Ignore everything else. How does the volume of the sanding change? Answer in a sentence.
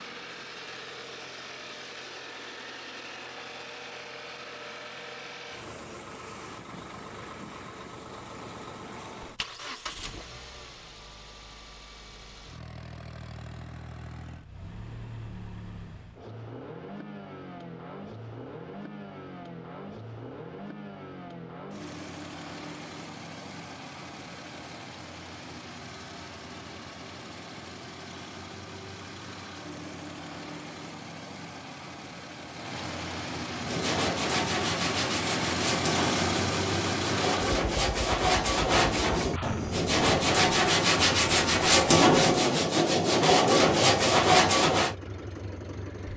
The loudness of the sanding goes up.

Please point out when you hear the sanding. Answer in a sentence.
You can hear the sanding from 33.5 to 45.0 s.